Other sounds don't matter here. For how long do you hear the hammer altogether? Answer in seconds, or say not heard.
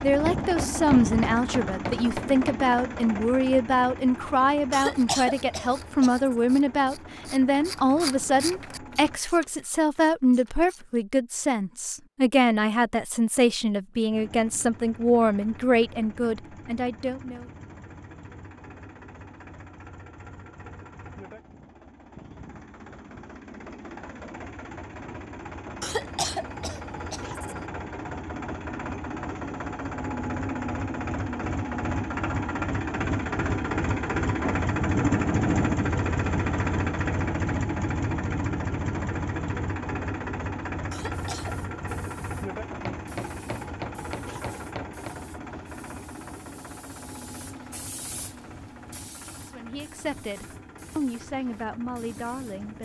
5 s.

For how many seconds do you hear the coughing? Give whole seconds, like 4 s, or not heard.
4 s.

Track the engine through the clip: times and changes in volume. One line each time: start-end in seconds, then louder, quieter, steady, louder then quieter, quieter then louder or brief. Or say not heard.
0.0-9.2 quieter
14.1-52.8 louder then quieter.